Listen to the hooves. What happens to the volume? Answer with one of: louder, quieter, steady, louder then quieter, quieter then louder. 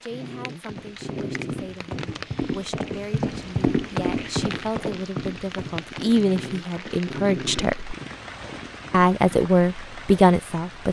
louder then quieter.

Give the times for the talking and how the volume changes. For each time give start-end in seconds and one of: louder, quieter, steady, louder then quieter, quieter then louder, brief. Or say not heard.
0.0-8.0 louder
8.9-10.8 brief.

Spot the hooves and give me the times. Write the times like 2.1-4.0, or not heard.
0.6-9.5.